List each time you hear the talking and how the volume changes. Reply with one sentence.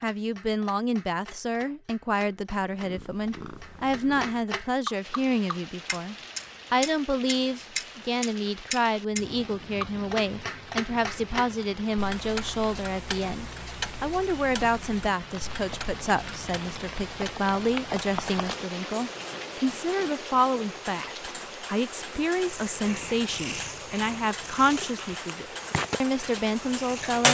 You can hear the talking from 0.0 to 27.2 s, at a steady volume.